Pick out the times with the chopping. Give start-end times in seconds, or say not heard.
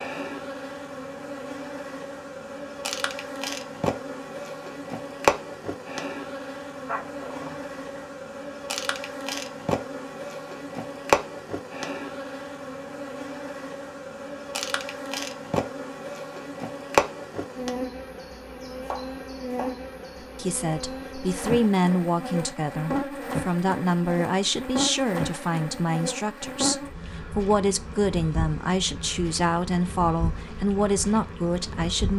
18.2-19.8.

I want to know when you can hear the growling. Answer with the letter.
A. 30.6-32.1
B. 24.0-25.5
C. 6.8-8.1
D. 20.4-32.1
C.